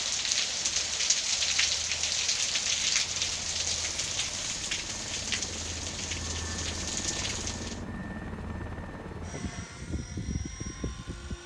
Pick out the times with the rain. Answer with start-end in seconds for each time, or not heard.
0.0-7.8.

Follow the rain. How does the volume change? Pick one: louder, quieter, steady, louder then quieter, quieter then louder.
quieter.